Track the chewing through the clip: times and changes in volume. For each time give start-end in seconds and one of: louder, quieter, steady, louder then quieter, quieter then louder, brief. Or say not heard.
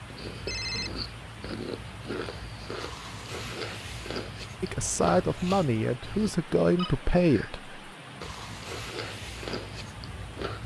0.0-6.3 steady
8.2-10.6 brief.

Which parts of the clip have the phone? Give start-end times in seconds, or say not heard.
0.5-0.9, 6.8-7.6.